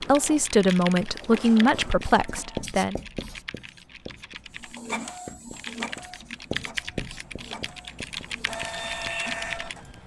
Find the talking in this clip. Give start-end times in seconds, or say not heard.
0.0-3.0.